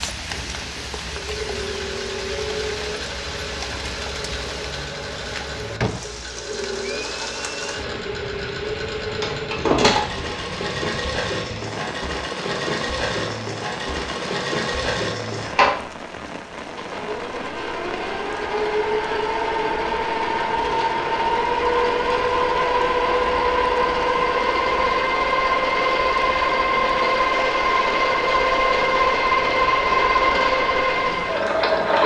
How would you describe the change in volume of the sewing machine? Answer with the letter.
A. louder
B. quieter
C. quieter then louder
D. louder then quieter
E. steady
A.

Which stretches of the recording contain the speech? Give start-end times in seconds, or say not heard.
not heard.